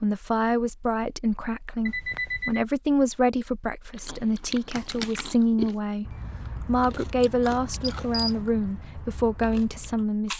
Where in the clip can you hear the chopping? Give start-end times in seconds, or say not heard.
not heard.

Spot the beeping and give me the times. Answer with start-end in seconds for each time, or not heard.
1.9-2.6, 7.8-8.4.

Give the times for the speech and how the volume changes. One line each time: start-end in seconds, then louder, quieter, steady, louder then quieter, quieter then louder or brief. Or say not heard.
0.0-10.3 steady.